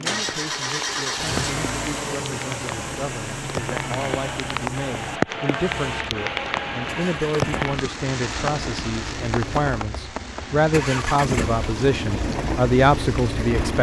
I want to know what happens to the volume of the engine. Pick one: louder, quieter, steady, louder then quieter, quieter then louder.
quieter then louder.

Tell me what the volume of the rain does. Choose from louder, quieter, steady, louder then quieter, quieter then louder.
louder then quieter.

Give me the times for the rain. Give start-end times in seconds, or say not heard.
0.0-13.6.